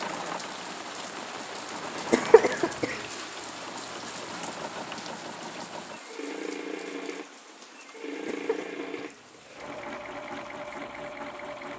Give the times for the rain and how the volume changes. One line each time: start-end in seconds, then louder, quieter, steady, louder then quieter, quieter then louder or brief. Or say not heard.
0.0-11.7 quieter.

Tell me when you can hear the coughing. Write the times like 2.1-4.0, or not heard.
2.1-3.0, 8.2-9.8.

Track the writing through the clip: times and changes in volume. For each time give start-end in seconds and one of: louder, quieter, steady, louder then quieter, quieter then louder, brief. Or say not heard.
not heard.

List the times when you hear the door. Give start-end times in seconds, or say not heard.
not heard.